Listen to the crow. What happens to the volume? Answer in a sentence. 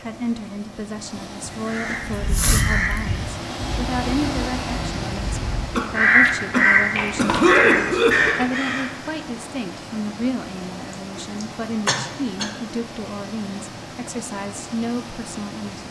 The loudness of the crow goes down, then up.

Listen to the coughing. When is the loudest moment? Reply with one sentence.
The volume of the coughing peaks at 8 seconds.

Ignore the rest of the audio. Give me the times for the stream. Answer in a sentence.
You can hear the stream from 0.0 to 15.8 s.